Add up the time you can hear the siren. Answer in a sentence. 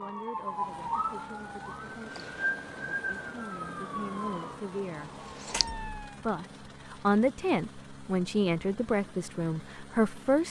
You can hear the siren for 6 seconds altogether.